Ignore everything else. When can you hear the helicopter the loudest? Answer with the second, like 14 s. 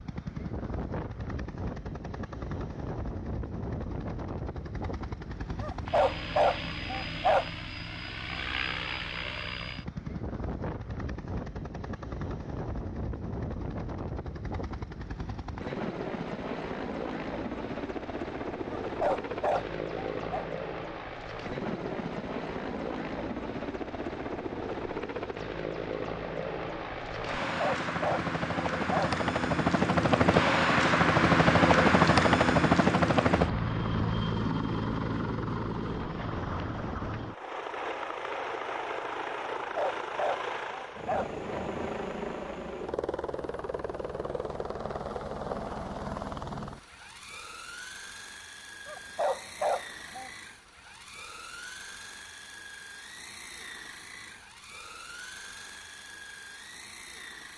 32 s.